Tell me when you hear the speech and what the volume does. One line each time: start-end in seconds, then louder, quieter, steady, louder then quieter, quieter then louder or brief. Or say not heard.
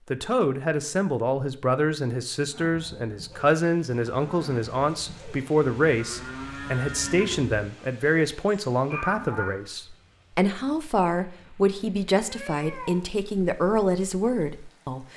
0.1-15.1 steady.